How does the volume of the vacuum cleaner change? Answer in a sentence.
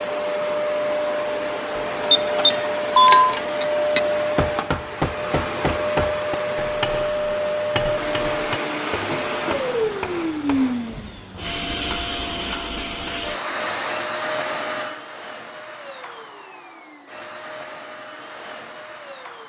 The volume of the vacuum cleaner goes down.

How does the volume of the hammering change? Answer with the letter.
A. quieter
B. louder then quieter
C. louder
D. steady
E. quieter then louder
A.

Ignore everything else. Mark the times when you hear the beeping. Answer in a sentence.
The beeping can be heard from 2.0 to 3.3 s.